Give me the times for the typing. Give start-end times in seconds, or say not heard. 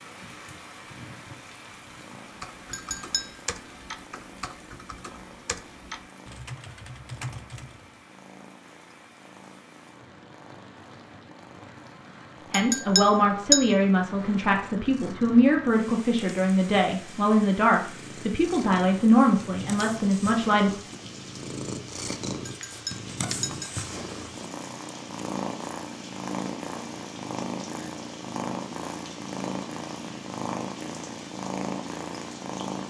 2.3-8.0.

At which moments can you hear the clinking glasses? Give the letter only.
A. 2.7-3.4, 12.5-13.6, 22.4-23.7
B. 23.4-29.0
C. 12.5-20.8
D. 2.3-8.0
A.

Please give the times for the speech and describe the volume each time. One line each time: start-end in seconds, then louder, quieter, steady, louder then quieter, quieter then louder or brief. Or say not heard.
12.5-20.8 steady.